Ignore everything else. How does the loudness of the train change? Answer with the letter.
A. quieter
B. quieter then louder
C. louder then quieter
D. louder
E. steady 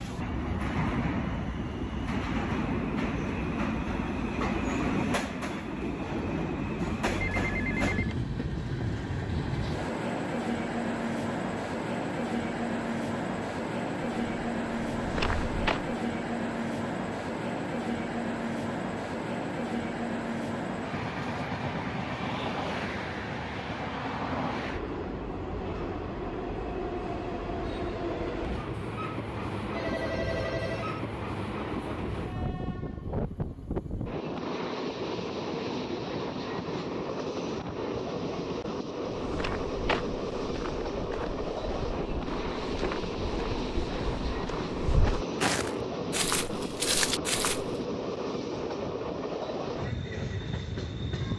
E.